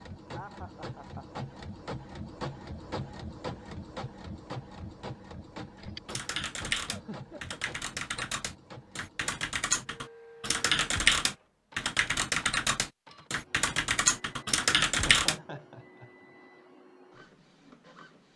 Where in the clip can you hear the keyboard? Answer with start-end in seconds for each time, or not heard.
5.8-15.4.